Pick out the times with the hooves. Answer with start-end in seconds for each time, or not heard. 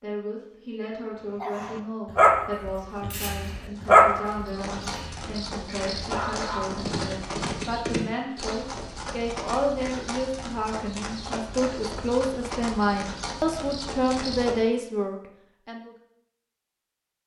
2.9-14.7.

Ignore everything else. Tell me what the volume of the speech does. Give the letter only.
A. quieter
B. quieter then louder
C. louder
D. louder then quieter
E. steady
C.